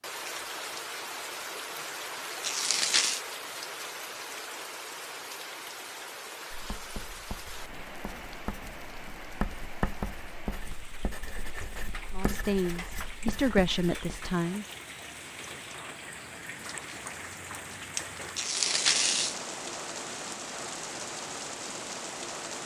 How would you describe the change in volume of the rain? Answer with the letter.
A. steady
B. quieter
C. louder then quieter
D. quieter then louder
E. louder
D.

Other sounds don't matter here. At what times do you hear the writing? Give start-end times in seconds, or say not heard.
6.5-14.3.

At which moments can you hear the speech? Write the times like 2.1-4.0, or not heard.
12.1-14.7.